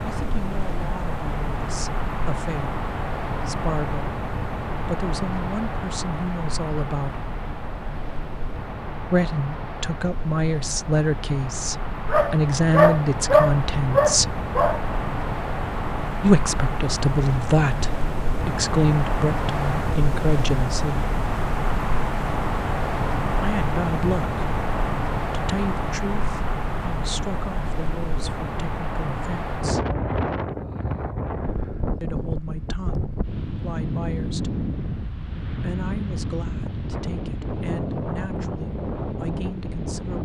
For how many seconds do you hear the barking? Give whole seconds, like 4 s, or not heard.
3 s.